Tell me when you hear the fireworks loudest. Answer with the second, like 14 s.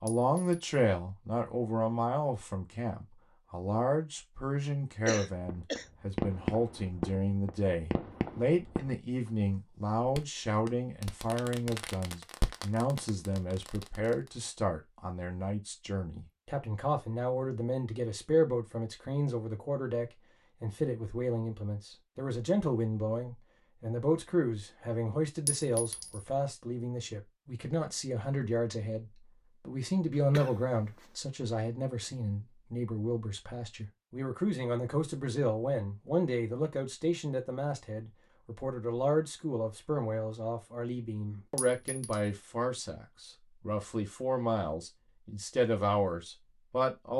6 s.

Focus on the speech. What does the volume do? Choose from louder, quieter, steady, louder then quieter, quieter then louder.
steady.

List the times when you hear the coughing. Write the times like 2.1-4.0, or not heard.
5.0-5.8, 30.3-31.1.